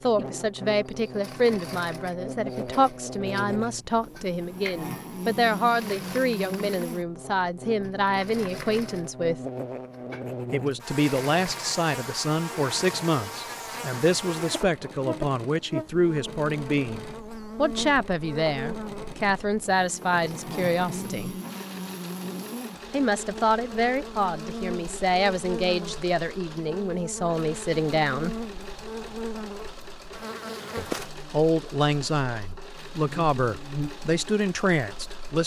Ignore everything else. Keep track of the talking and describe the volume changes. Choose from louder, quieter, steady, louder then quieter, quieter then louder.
steady.